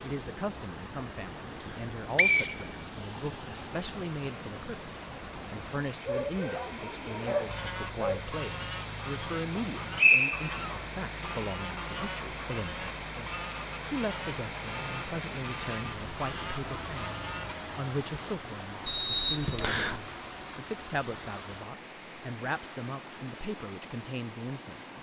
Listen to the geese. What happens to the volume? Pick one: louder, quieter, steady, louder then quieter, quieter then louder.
steady.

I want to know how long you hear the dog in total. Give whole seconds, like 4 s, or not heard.
2 s.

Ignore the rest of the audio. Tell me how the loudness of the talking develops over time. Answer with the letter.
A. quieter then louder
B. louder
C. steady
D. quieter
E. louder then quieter
C.